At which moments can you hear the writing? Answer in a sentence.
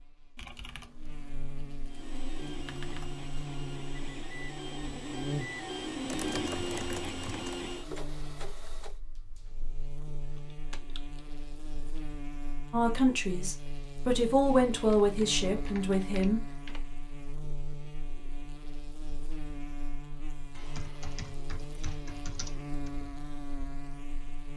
The writing can't be heard in this clip.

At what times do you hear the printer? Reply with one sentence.
You can hear the printer from 1.9 to 9.0 s.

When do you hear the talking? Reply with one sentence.
The talking can be heard from 12.7 to 16.6 s.